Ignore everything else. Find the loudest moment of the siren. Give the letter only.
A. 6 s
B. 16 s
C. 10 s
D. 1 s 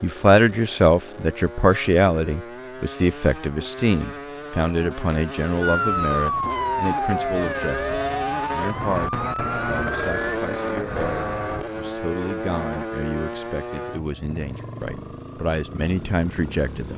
A.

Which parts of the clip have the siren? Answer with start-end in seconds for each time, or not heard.
5.6-10.4.